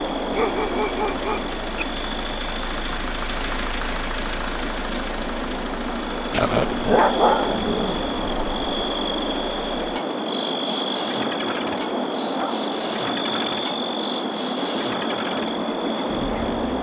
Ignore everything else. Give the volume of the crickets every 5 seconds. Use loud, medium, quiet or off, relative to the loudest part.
medium, loud, loud, loud.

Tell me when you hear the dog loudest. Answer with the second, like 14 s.
7 s.